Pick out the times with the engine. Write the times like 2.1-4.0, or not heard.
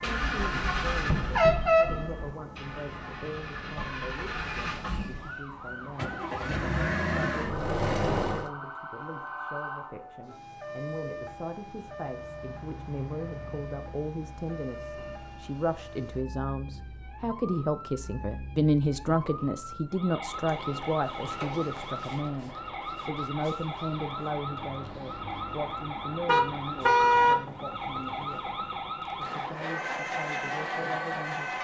0.0-8.5, 20.1-31.5.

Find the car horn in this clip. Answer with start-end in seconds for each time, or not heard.
0.3-2.4, 26.2-27.4.